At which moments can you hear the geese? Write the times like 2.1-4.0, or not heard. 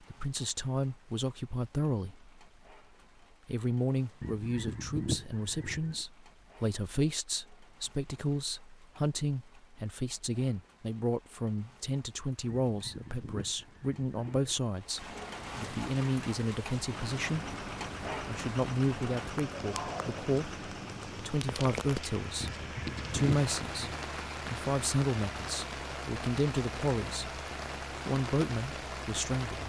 4.2-6.0, 12.7-14.6, 22.4-24.0.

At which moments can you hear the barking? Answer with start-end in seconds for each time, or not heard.
not heard.